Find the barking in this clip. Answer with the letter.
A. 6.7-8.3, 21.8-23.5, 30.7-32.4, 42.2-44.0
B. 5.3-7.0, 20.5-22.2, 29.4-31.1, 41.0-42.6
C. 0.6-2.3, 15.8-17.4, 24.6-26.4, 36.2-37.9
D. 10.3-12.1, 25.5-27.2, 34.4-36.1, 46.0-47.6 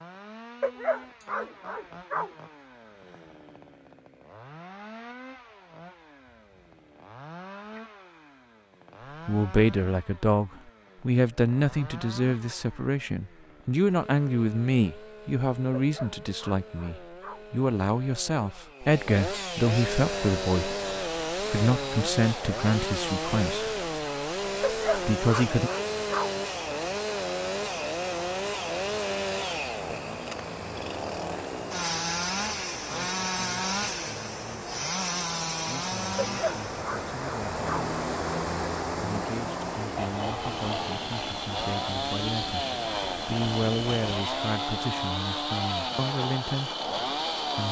C.